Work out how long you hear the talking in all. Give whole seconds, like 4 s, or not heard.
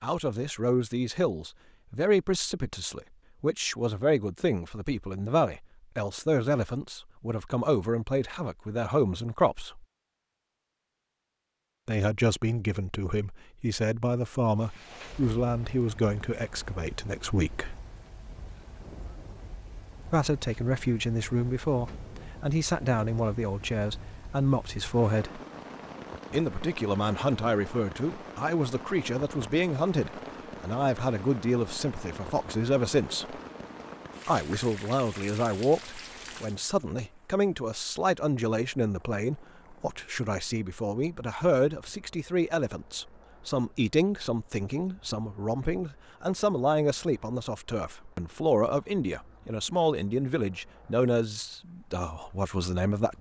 47 s.